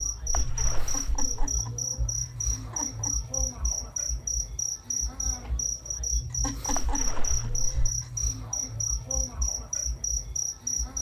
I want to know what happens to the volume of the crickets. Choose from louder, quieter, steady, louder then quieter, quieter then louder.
steady.